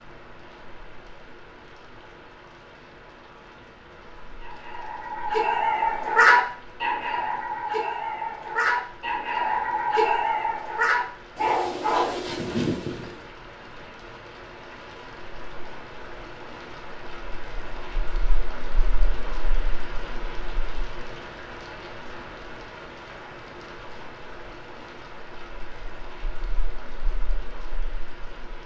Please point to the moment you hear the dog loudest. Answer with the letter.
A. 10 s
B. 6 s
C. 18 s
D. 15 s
B.